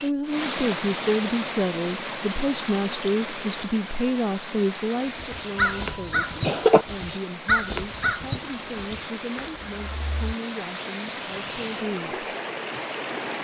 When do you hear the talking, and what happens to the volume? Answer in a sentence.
The talking can be heard from 0.0 to 12.3 s, getting quieter.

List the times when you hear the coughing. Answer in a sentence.
You can hear the coughing from 5.5 to 6.8 s.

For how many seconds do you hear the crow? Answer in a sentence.
The crow can be heard for 5 seconds in total.